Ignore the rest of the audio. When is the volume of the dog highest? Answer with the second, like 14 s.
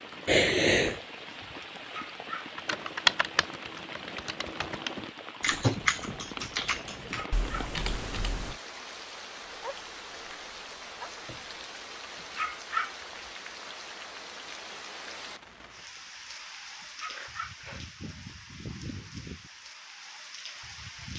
13 s.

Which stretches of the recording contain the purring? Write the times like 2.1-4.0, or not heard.
not heard.